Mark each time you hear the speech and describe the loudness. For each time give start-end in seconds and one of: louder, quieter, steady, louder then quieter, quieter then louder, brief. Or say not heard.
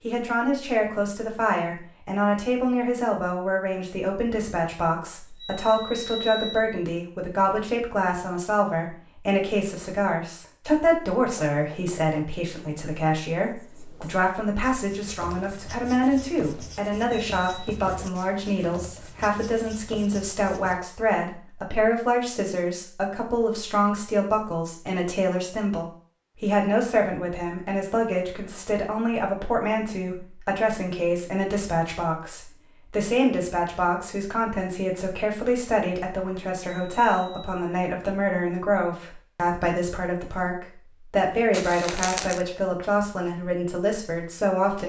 0.0-44.8 steady.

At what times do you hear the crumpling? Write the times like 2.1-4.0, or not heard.
41.5-42.5.